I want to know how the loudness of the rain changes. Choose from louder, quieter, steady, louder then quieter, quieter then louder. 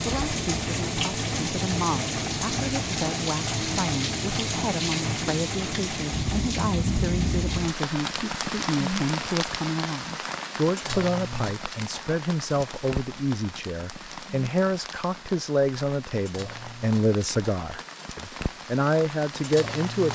quieter.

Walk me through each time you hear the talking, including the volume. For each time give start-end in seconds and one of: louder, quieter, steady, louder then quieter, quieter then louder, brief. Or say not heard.
0.0-20.0 louder.